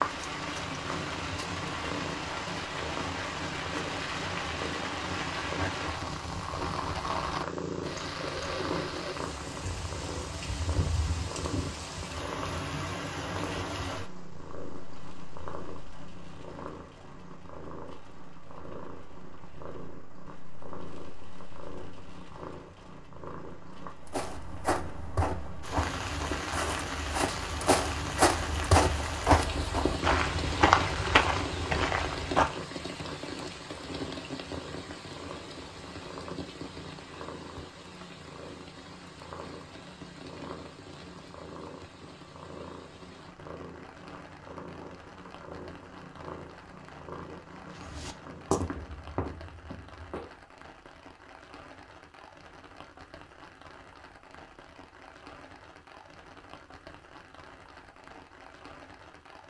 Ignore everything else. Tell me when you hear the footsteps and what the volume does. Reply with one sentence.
You can hear the footsteps from 24.1 to 32.5 s, getting louder; and briefly from 47.8 to 50.3 s.